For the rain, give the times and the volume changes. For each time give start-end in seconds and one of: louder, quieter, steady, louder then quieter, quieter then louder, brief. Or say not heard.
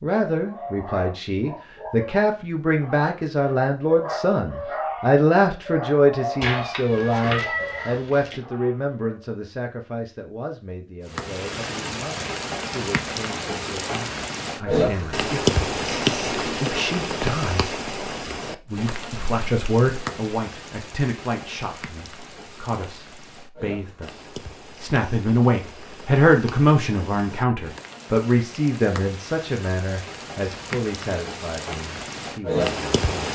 11.1-33.2 quieter then louder.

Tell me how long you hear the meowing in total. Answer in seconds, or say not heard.
2 s.